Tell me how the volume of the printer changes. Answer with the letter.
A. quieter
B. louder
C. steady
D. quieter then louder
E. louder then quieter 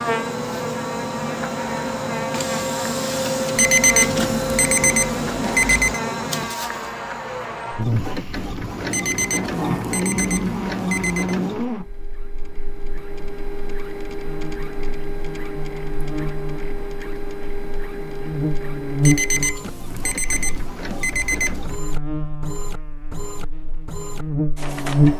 A.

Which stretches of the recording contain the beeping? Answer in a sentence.
The beeping can be heard from 3.5 to 6.0 s, from 8.9 to 11.3 s and from 19.0 to 21.7 s.